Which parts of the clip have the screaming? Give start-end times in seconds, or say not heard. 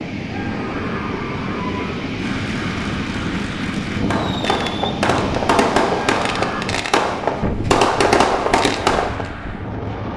0.2-2.2, 6.2-6.7.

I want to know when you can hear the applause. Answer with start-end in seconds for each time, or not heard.
2.1-4.0.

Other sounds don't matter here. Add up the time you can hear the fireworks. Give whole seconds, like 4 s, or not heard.
5 s.